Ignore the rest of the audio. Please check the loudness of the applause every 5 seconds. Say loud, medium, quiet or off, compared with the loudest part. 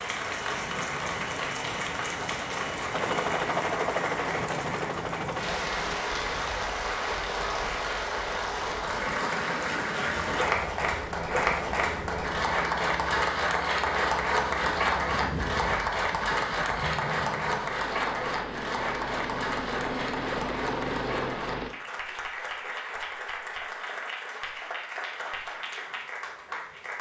medium, loud, loud, loud, medium, medium.